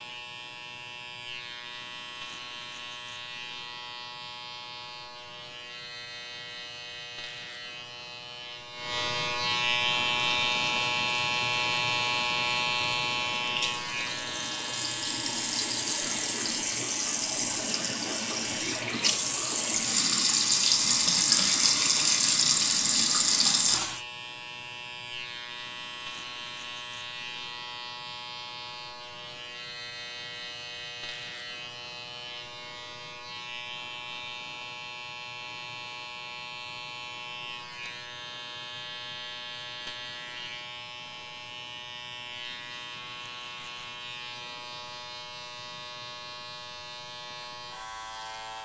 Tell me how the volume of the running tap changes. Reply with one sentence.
The loudness of the running tap goes up.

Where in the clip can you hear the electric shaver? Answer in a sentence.
The electric shaver can be heard from 0.0 to 48.5 s.